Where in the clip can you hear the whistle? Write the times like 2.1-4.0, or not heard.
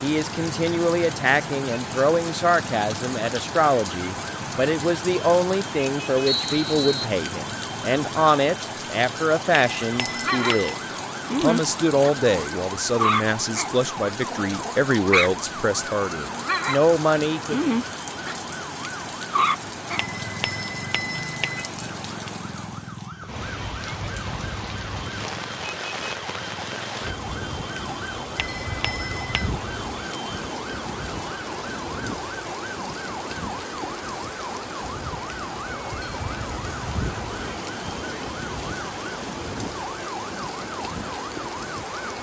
6.2-7.1.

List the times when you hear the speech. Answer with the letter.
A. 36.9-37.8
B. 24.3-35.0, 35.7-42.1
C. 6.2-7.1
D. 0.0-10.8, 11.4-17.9
D.